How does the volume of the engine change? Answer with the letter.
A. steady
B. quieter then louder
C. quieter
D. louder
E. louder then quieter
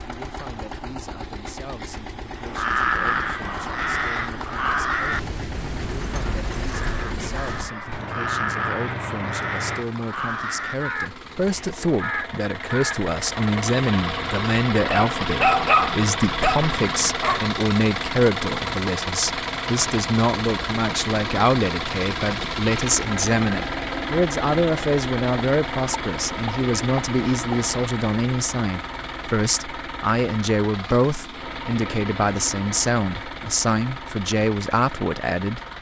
E.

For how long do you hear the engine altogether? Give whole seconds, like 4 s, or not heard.
36 s.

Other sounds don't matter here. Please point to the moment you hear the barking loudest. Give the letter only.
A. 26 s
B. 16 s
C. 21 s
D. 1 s
B.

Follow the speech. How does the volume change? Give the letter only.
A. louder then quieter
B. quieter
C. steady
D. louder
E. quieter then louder
D.